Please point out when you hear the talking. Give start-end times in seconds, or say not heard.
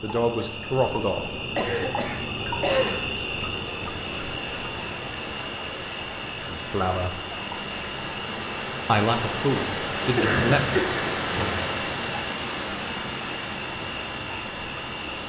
0.0-1.9, 6.5-7.2, 8.8-11.7.